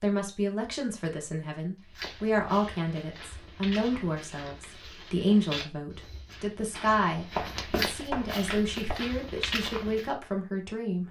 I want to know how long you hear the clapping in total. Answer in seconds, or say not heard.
2 s.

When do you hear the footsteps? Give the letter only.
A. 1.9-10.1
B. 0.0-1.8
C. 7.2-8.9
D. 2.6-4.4
A.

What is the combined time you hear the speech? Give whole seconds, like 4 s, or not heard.
11 s.